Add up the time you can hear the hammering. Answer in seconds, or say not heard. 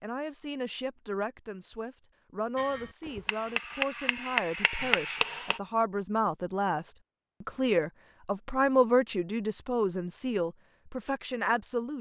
3 s.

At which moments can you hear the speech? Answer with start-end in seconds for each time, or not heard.
0.0-11.9.